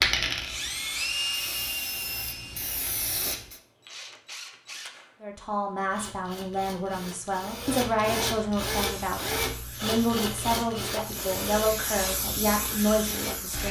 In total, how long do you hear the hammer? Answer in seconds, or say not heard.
not heard.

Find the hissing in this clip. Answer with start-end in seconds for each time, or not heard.
0.0-3.6, 8.8-13.6.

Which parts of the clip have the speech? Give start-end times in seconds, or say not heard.
5.2-13.6.